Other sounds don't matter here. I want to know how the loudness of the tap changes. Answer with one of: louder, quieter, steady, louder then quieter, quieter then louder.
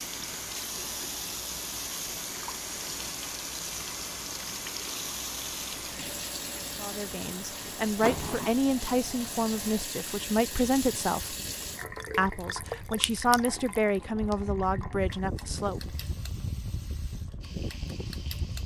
quieter.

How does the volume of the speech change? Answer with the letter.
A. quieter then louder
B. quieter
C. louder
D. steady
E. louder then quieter
D.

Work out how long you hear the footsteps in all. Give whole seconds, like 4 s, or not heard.
not heard.